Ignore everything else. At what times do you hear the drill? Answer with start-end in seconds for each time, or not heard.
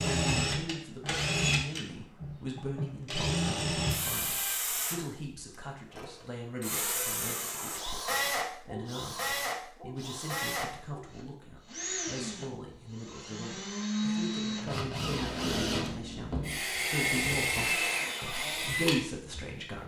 0.0-5.0, 5.9-19.8.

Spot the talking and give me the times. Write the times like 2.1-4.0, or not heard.
0.0-19.8.